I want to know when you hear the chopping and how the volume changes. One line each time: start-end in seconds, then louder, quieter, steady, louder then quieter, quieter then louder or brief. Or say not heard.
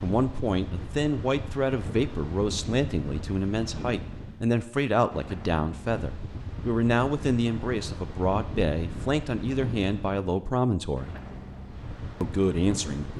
not heard.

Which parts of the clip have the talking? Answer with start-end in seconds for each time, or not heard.
0.0-11.2, 12.2-13.1.